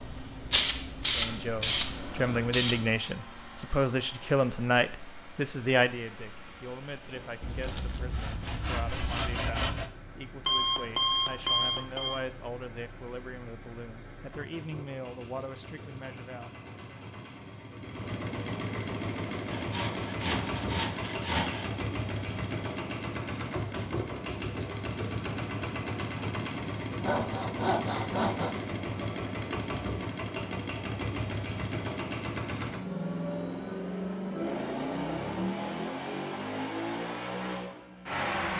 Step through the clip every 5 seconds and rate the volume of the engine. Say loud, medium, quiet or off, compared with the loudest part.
quiet, quiet, quiet, medium, loud, loud, loud, loud.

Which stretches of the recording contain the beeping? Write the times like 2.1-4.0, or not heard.
10.4-12.2.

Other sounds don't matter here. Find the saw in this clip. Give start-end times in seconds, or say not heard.
7.4-9.9, 19.5-21.9, 26.9-28.6.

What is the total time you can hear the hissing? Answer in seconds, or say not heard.
3 s.